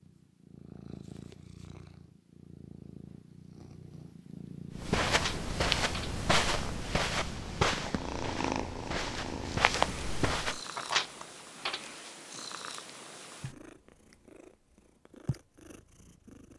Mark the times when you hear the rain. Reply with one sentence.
You can't hear the rain here.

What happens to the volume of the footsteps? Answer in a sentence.
The volume of the footsteps goes down, then up.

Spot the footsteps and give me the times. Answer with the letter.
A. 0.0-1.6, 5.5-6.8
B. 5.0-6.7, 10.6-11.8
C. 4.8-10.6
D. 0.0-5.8
C.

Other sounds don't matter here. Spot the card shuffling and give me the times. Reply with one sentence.
The card shuffling can be heard from 5.0 to 6.7 s and from 10.6 to 11.8 s.